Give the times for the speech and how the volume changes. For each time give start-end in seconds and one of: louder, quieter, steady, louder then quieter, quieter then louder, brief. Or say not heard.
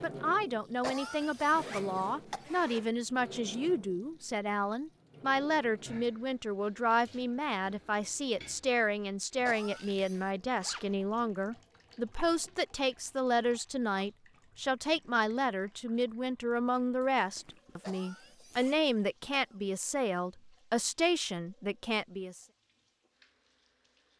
0.0-22.4 steady.